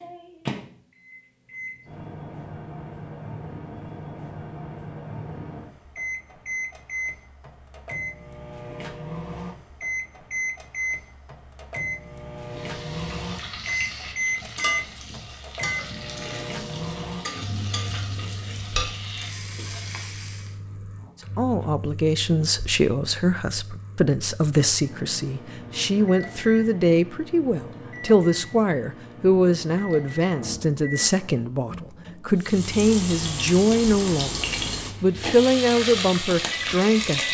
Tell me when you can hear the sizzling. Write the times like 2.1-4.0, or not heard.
12.4-20.6, 32.4-37.2.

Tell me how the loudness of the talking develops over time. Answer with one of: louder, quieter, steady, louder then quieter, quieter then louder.
steady.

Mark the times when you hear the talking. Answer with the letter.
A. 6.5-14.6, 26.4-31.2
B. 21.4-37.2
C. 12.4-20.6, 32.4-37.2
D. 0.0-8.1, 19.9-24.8
B.